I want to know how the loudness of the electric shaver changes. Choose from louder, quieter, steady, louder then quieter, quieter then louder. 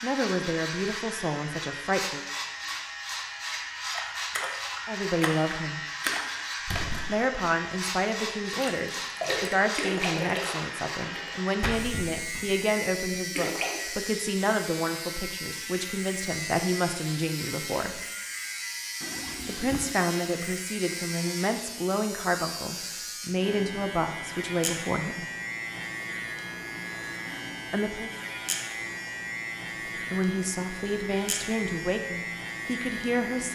steady.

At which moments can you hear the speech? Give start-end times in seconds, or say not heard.
0.0-2.2, 4.8-5.8, 7.0-18.0, 19.4-25.2, 27.7-28.1, 30.1-33.5.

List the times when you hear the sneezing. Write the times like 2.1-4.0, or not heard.
not heard.